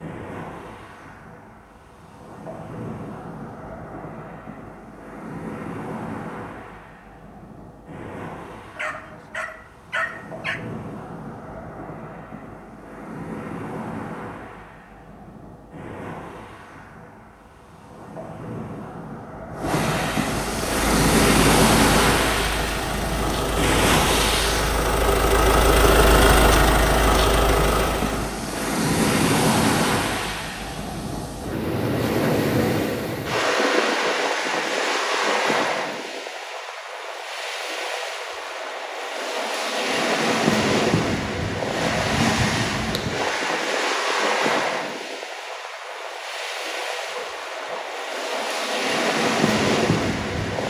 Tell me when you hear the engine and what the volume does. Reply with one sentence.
The engine can be heard from 20.4 to 28.3 s, getting louder.